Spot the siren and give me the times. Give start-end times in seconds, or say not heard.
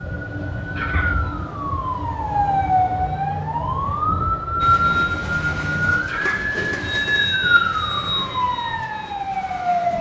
0.0-9.9.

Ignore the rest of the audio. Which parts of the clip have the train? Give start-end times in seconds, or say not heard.
4.6-9.9.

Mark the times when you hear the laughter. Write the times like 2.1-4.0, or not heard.
0.8-1.2, 6.0-6.5.